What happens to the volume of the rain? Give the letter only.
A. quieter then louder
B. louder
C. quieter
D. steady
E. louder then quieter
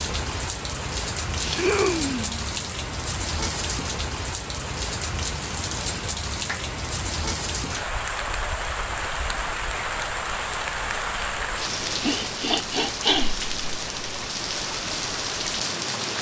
D.